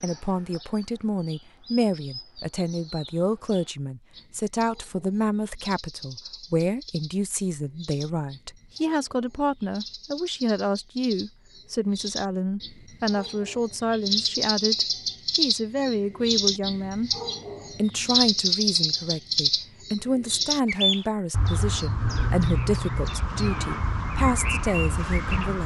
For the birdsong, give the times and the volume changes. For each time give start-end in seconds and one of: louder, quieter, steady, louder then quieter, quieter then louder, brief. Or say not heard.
0.0-25.6 louder.